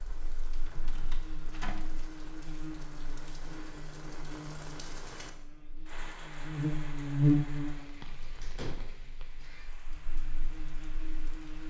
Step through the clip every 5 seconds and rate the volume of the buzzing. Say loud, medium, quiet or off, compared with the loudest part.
quiet, loud, quiet.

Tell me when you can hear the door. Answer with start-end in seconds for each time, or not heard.
0.7-1.9, 8.4-9.5.